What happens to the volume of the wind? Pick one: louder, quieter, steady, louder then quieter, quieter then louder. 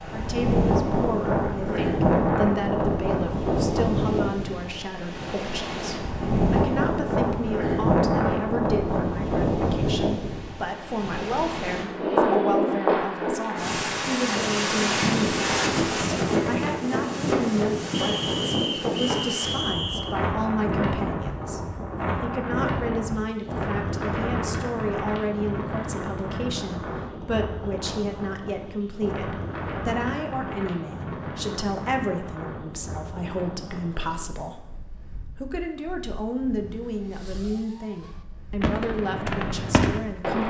quieter.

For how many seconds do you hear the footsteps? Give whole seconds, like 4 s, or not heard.
not heard.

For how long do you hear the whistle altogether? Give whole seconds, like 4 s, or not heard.
2 s.